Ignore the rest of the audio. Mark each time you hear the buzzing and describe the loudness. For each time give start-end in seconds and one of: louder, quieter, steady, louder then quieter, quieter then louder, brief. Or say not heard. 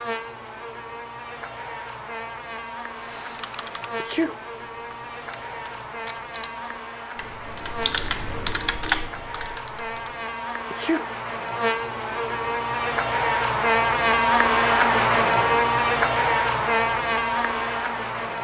0.0-18.3 louder.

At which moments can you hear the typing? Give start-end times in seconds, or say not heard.
2.9-10.2.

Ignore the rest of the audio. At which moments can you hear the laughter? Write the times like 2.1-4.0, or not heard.
not heard.